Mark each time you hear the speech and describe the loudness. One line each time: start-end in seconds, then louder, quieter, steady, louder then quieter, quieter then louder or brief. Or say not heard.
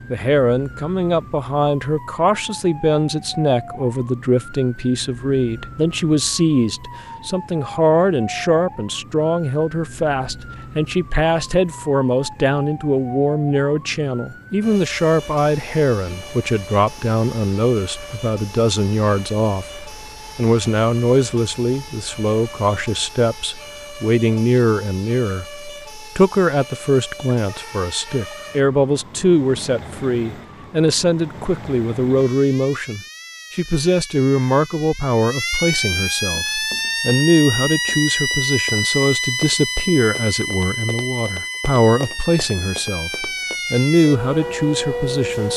0.1-45.5 steady.